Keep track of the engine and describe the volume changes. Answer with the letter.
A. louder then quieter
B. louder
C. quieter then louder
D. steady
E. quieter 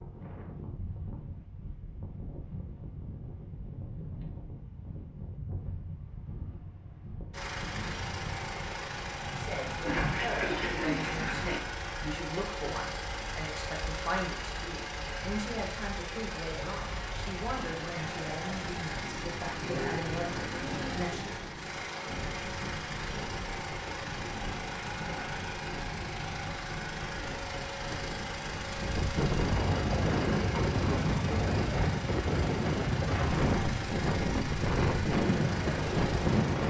D.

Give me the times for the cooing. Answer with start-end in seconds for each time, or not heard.
9.8-11.6, 19.6-21.4.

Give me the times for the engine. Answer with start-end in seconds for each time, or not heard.
7.3-36.6.